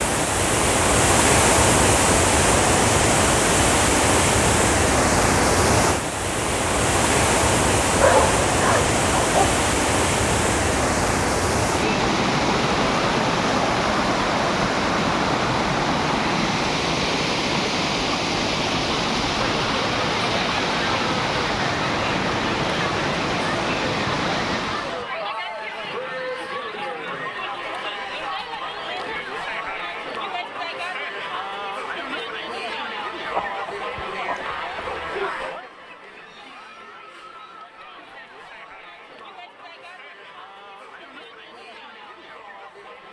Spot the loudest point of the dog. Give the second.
8 s.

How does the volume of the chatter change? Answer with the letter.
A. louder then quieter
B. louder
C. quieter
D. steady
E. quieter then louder
C.